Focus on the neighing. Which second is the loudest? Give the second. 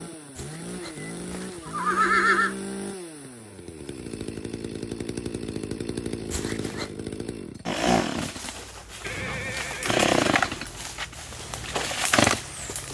2 s.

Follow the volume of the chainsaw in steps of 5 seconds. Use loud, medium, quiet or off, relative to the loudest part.
medium, medium, loud.